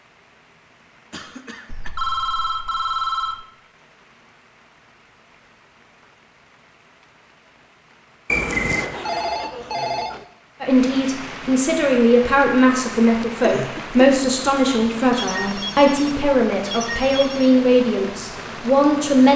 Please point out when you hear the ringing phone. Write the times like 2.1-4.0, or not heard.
1.7-3.5, 8.8-10.2, 15.1-17.6.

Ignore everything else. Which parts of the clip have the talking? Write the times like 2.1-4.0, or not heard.
10.6-19.3.